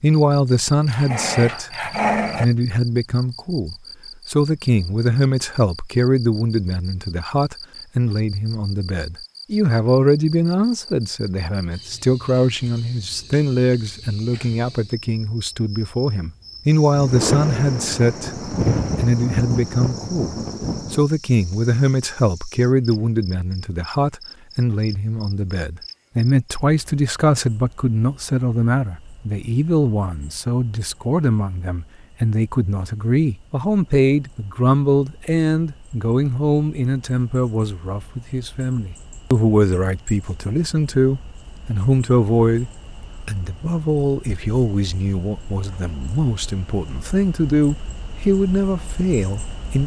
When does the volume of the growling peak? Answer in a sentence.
The loudest moment of the growling is at 2 seconds.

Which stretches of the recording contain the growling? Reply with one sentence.
The growling can be heard from 0.8 to 2.5 s.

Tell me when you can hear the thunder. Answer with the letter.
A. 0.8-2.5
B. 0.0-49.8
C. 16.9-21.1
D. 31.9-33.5
C.